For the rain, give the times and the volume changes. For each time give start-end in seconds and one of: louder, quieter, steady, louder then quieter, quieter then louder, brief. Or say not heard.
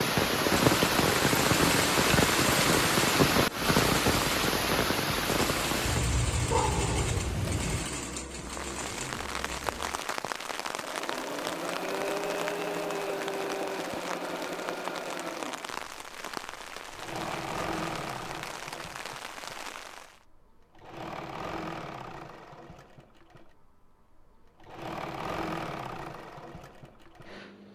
0.0-20.2 quieter.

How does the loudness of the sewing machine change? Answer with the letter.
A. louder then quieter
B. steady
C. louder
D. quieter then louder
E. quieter
E.